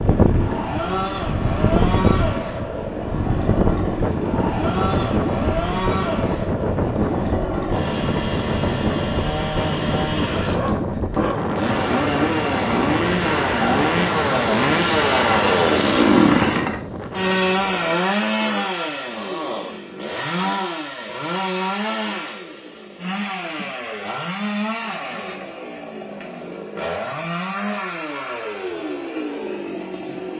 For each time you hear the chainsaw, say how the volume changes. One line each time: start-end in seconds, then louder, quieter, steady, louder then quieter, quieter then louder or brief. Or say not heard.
0.0-30.3 louder then quieter.